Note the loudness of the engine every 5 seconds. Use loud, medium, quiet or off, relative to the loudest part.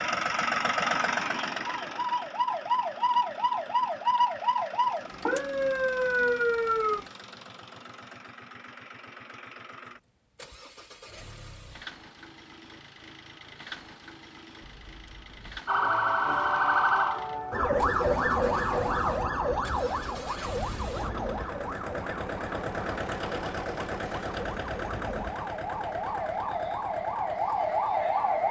loud, quiet, quiet, quiet, loud, medium.